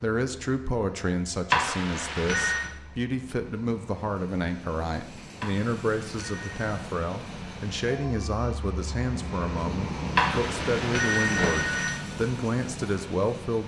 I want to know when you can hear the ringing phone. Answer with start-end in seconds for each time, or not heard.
1.5-2.7, 5.4-6.8, 10.2-12.0.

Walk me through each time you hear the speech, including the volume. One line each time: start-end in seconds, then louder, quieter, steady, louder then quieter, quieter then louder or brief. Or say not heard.
0.0-13.6 steady.